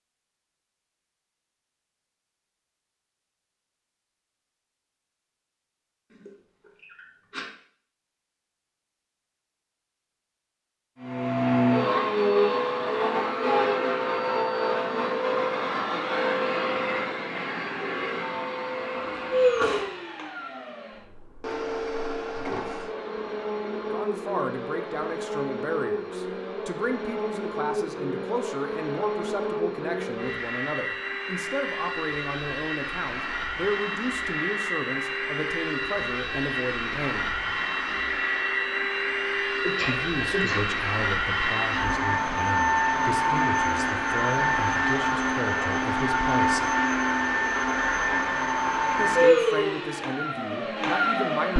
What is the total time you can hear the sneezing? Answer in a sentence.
You can hear the sneezing for 3 seconds altogether.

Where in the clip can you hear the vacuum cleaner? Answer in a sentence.
The vacuum cleaner can be heard from 11.0 to 51.5 s.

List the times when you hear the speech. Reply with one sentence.
The speech can be heard from 23.9 to 37.4 s, from 39.9 to 46.7 s and from 49.0 to 51.5 s.